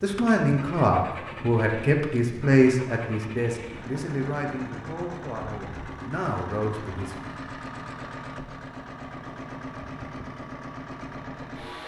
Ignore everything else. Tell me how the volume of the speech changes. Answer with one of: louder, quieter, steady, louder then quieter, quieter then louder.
quieter.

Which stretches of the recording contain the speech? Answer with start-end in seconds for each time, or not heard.
0.0-7.2.